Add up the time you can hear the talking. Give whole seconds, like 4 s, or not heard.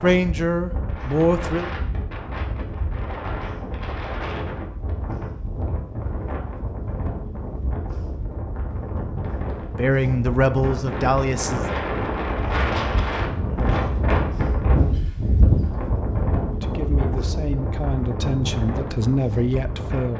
7 s.